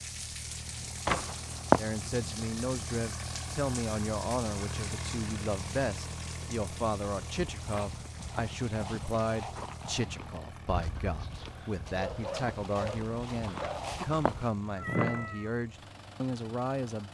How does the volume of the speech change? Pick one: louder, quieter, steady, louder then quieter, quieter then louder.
steady.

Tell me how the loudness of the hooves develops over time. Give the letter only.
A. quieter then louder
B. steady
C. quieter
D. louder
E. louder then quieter
D.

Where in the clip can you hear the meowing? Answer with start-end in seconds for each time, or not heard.
1.1-1.8, 7.7-8.4, 13.6-15.5.